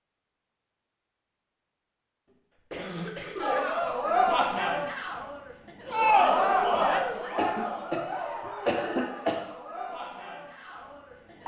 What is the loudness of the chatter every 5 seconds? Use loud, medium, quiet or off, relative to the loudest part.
loud, loud, quiet.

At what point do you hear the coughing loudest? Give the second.
9 s.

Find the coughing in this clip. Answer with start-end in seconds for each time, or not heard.
2.7-3.8, 7.3-8.0, 8.7-9.3.